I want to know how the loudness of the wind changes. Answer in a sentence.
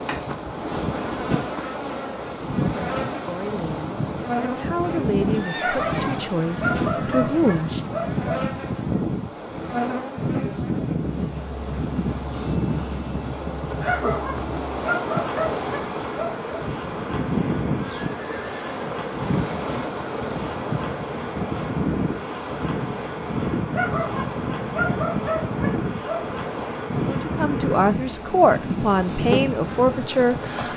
The volume of the wind stays about the same.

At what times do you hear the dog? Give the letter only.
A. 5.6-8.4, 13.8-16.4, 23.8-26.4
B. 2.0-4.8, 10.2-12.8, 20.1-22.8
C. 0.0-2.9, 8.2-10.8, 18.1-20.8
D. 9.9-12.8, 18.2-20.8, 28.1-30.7
A.